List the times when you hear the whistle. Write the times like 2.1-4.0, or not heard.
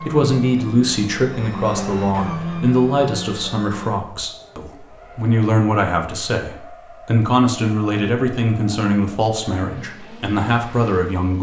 not heard.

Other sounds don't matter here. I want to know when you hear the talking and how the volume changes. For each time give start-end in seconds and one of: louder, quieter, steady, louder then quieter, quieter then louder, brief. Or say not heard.
0.0-11.3 steady.